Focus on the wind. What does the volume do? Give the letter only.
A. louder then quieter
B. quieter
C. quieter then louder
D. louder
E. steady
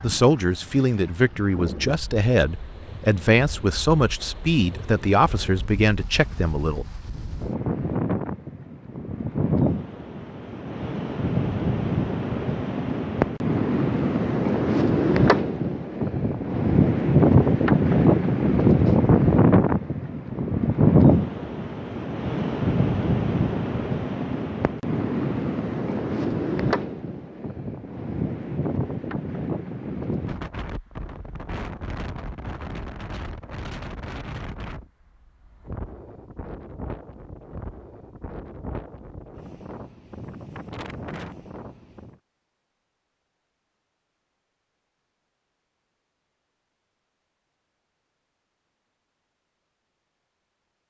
A.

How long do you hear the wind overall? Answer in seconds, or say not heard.
42 s.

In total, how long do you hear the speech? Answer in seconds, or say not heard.
7 s.